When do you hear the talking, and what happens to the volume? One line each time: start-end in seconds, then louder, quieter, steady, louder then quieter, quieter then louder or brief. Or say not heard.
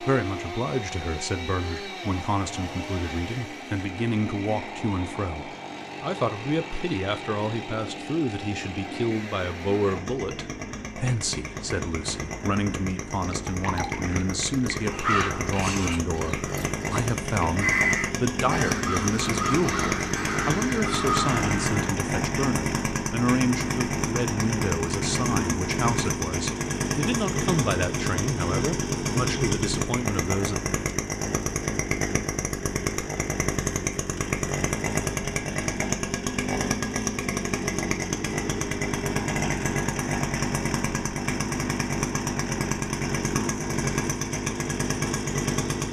0.0-30.6 steady.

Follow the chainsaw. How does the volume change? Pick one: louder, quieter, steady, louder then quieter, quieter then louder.
louder.